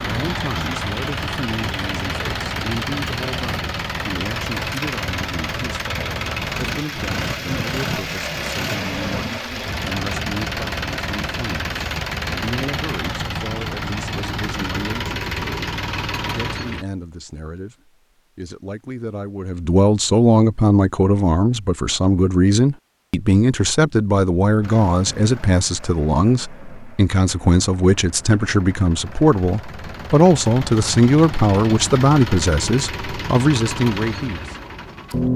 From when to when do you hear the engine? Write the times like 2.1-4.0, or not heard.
0.0-16.9, 24.6-35.3.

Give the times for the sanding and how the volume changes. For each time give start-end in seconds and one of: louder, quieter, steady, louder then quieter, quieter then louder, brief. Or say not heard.
not heard.